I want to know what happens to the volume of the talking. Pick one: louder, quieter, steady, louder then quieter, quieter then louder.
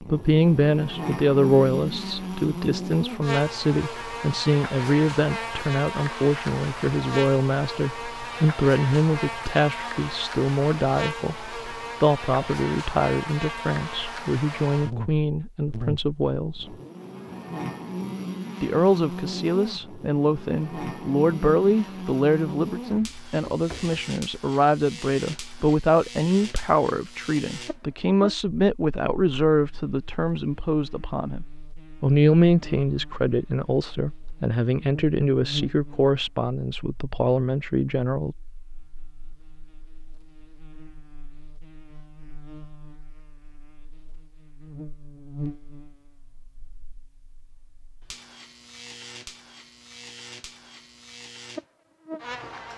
steady.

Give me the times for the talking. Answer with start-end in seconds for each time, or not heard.
0.0-16.8, 18.6-38.4.